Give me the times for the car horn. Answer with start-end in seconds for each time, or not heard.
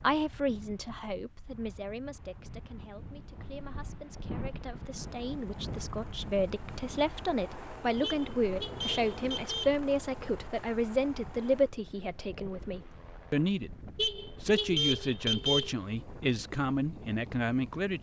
3.4-4.0, 8.0-9.8, 13.9-15.8.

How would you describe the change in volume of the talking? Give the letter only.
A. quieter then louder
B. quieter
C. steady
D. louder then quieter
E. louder
E.